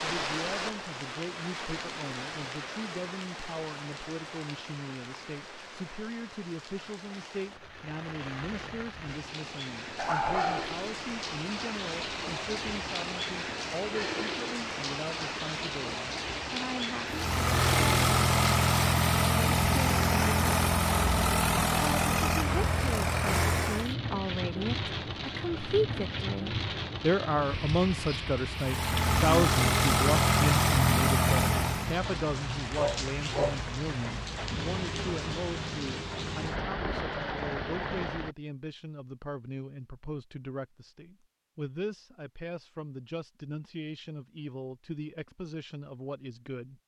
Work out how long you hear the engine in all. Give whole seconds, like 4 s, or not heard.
10 s.